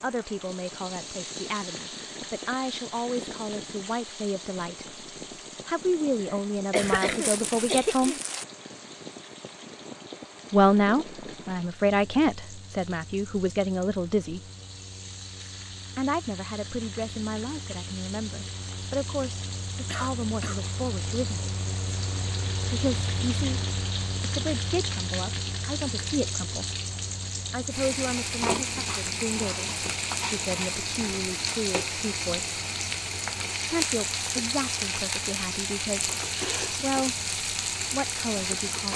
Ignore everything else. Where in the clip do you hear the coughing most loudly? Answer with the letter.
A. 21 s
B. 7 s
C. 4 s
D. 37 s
B.